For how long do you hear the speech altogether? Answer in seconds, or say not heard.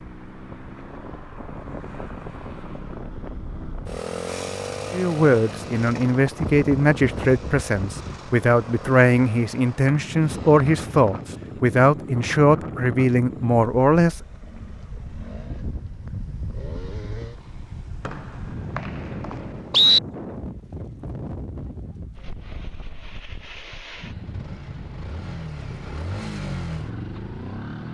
9 s.